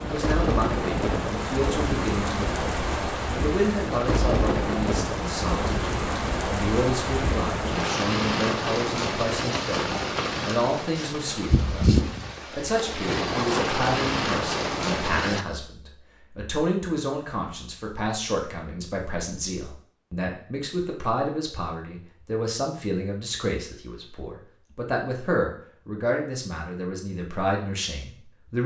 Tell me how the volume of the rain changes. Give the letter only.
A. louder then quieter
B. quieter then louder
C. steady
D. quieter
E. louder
C.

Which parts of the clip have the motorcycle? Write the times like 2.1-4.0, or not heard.
not heard.